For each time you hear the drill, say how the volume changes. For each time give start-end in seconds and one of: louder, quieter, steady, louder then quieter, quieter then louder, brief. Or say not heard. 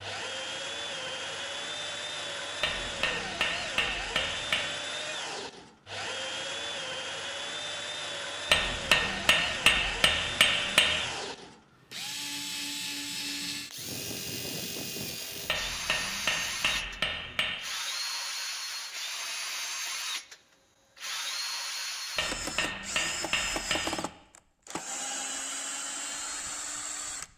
0.0-27.3 steady.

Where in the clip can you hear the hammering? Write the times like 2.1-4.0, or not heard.
2.6-4.6, 8.5-11.1, 15.4-17.6, 22.1-24.0.